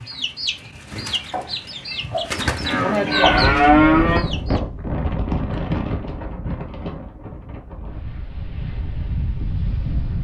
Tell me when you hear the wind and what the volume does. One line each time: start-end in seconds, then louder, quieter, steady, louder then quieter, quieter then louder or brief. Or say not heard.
3.1-10.2 quieter then louder.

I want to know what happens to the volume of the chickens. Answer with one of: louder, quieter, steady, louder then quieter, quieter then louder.
louder then quieter.